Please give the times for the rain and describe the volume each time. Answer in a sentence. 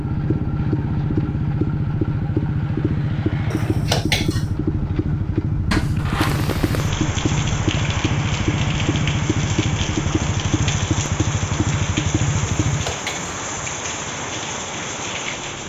The rain can be heard from 6.2 to 15.6 s, at a steady volume.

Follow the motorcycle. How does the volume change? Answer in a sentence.
The volume of the motorcycle goes down.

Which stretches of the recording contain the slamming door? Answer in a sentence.
You can hear the slamming door from 5.7 to 6.4 s.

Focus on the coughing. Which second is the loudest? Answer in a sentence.
The volume of the coughing peaks at 4 seconds.